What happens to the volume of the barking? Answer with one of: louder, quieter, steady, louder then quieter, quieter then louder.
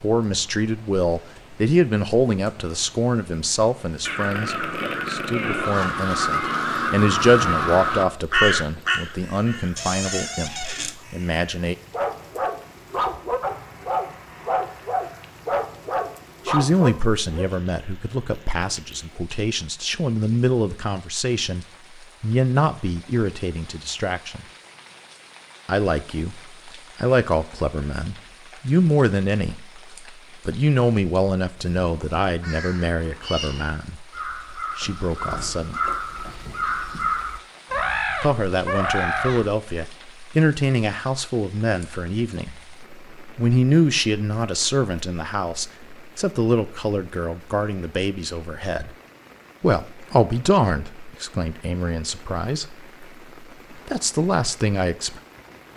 steady.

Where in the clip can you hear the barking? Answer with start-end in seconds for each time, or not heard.
11.9-17.4.